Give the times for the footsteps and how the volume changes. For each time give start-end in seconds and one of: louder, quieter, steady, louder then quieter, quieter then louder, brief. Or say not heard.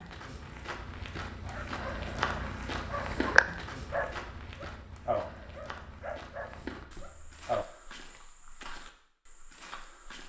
0.0-10.2 quieter.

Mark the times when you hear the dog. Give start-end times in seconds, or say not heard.
1.4-7.7.